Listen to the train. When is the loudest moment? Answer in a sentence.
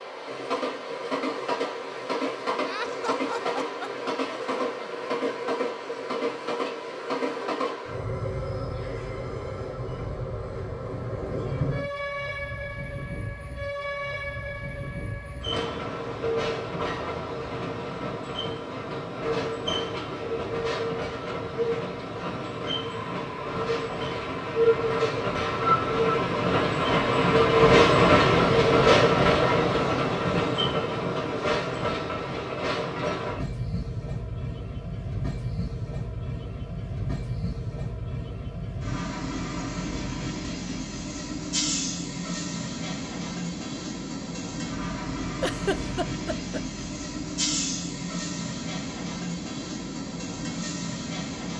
The volume of the train peaks at 28 seconds.